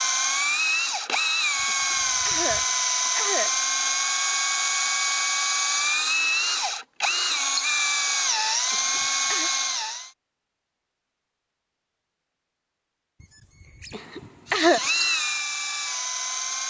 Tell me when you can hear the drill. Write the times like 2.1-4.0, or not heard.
0.0-10.1, 14.4-16.6.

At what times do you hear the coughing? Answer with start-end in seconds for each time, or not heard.
1.6-3.5, 8.7-9.5, 13.9-14.8.